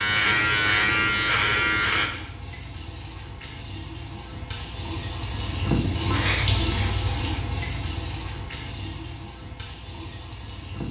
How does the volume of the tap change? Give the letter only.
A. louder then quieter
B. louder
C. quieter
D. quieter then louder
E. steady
A.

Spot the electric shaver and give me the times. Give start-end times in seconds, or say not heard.
0.0-2.1.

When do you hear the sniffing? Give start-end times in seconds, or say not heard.
6.1-7.0.